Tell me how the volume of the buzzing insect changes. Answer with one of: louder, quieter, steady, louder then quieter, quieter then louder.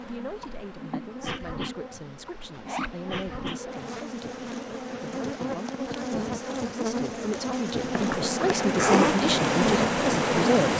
louder.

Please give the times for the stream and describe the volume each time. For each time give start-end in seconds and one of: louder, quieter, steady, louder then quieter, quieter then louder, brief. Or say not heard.
0.0-10.7 louder.